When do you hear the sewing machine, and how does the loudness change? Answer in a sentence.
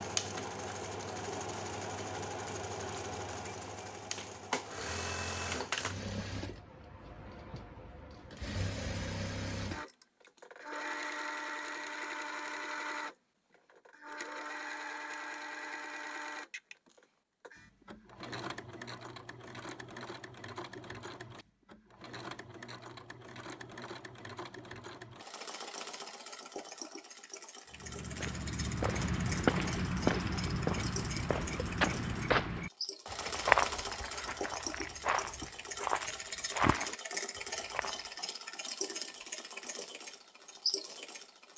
You can hear the sewing machine from 0.0 to 41.5 s, getting quieter then louder.